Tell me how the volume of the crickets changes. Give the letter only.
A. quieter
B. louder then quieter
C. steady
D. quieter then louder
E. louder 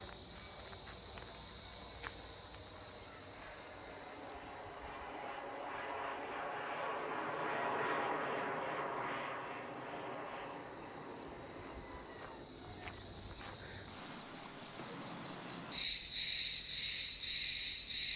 D.